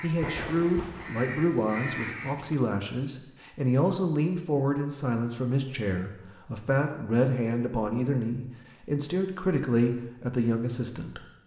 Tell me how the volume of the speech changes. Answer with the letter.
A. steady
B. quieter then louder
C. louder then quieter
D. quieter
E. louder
A.